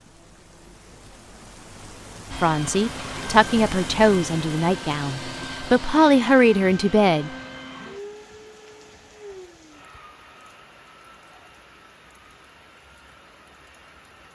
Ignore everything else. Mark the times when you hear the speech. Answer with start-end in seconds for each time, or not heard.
2.4-7.3.